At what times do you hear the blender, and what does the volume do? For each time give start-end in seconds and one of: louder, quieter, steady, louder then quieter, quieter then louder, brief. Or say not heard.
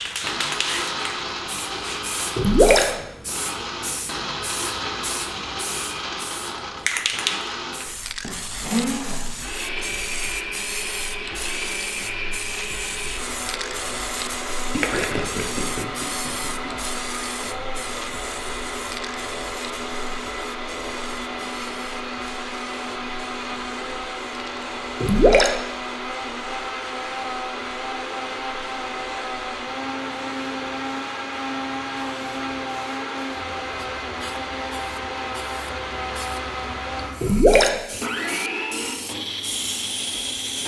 0.2-40.6 steady.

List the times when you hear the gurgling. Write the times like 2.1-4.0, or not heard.
2.4-2.9, 14.7-16.7, 25.0-25.5, 37.2-37.8.